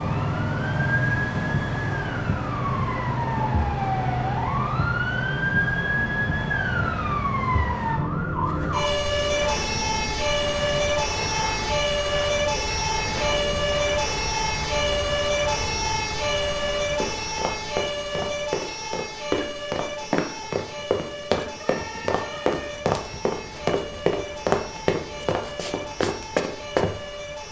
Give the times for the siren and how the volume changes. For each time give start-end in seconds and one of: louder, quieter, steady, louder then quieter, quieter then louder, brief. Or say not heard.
0.0-27.4 quieter.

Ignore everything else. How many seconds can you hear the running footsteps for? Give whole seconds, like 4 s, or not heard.
10 s.